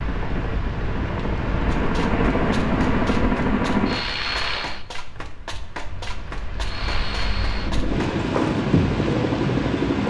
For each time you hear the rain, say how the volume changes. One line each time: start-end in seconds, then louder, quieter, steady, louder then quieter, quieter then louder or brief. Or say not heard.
0.0-10.0 quieter then louder.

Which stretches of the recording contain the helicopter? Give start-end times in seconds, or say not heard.
0.0-4.8, 6.5-10.0.